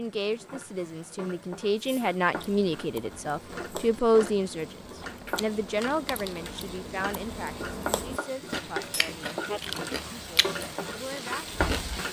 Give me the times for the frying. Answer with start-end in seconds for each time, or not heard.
0.0-12.0.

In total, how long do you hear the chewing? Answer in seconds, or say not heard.
10 s.